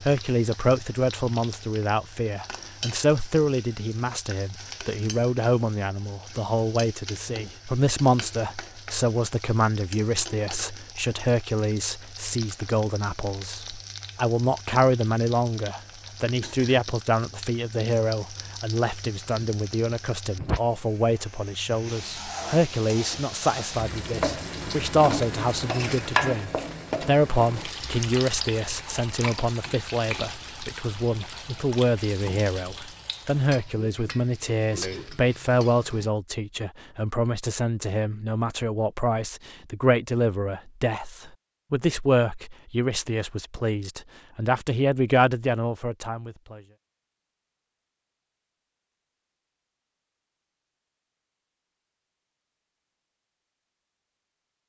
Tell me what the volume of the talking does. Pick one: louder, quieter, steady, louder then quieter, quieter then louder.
steady.